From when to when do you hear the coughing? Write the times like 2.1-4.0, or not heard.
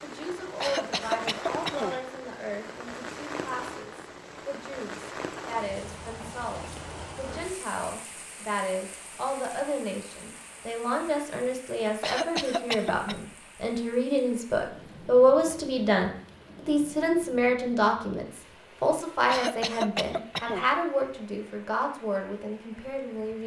0.6-2.0, 12.0-13.2, 19.2-20.7.